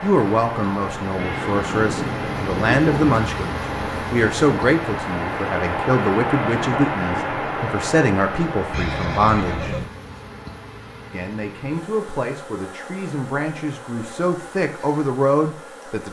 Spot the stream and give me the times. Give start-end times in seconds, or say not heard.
0.0-9.6.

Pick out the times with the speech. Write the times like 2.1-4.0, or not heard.
0.0-9.8, 11.1-16.0.